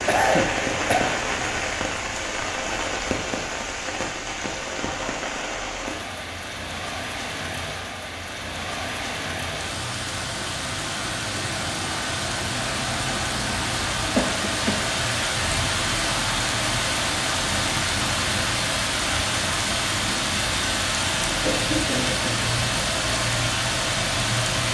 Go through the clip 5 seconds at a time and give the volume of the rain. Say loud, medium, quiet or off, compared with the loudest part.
loud, medium, loud, loud, loud.